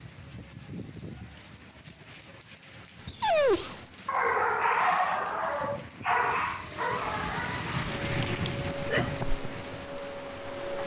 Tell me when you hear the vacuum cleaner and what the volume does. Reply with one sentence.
The vacuum cleaner can be heard from 6.5 to 10.8 s, at a steady volume.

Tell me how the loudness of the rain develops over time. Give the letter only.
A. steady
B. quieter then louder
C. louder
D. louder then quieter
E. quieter
C.